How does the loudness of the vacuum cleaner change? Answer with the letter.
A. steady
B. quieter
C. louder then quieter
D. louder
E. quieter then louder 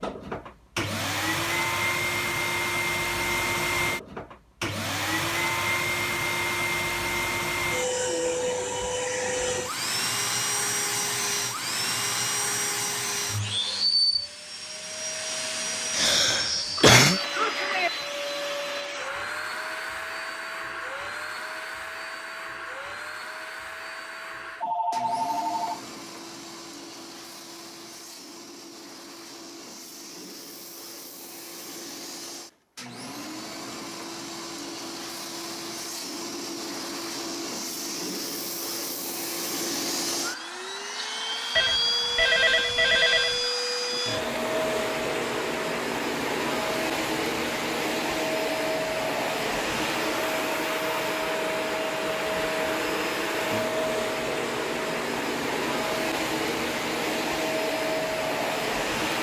E.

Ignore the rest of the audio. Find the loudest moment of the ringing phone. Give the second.
42 s.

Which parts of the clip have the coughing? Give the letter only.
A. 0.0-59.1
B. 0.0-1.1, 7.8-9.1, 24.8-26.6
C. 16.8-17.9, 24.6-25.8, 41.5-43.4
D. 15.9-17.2
D.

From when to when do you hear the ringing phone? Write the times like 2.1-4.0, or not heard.
16.8-17.9, 24.6-25.8, 41.5-43.4.